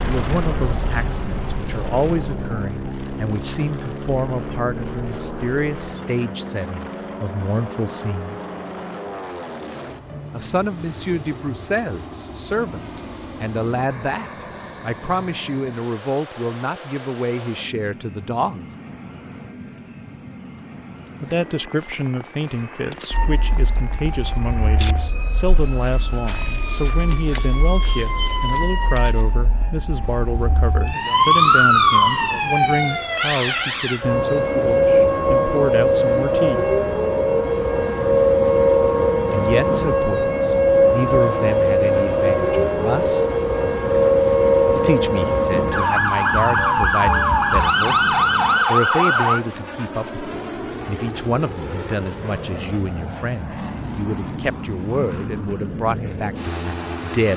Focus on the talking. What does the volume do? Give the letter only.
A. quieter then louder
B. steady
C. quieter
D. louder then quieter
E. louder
B.